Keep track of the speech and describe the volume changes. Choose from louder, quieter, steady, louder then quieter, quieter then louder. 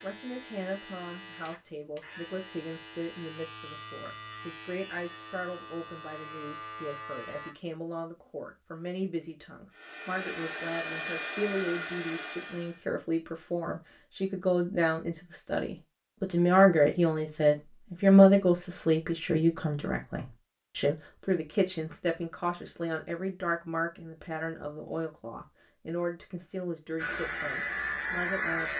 louder then quieter.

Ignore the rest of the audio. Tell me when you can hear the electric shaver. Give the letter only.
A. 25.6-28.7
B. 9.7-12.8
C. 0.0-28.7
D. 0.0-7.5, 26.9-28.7
D.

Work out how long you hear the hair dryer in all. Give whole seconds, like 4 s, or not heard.
3 s.